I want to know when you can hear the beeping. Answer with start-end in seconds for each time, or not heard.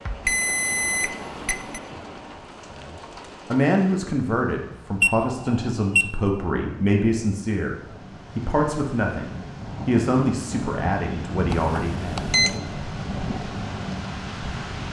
0.2-1.8, 5.0-6.0, 11.5-12.6.